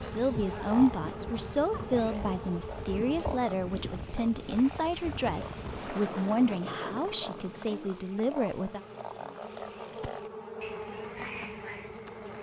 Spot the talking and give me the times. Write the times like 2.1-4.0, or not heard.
0.0-8.8.